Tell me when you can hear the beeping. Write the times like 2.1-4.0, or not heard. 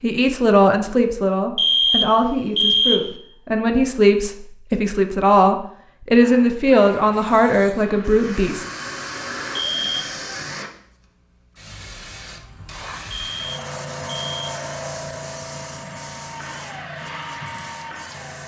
1.6-3.1, 9.6-10.2, 13.1-14.6.